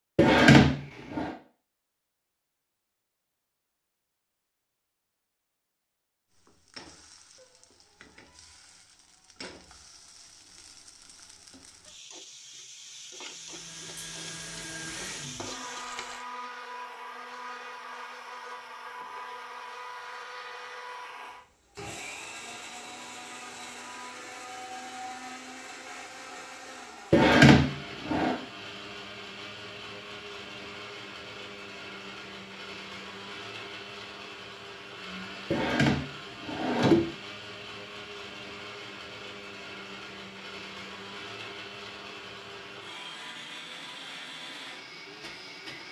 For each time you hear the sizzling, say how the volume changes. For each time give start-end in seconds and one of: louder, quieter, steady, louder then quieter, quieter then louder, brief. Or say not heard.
6.3-16.2 louder.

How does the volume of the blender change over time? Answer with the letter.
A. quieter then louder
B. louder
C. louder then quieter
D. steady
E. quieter
D.